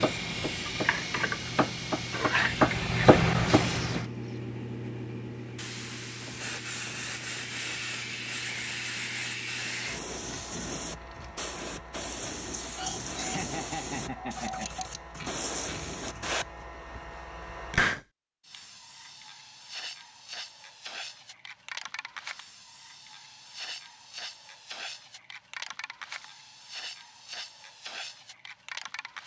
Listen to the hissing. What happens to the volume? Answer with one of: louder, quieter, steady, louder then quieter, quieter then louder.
quieter.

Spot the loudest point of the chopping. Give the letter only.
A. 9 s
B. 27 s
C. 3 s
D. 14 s
C.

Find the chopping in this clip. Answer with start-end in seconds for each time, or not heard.
0.0-4.0.